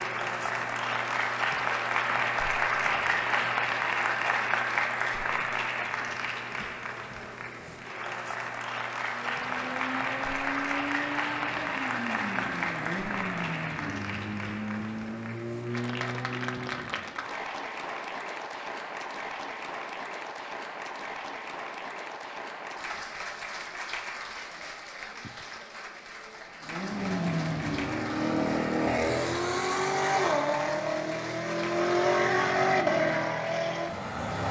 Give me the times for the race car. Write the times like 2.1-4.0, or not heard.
9.0-17.1, 26.6-34.4.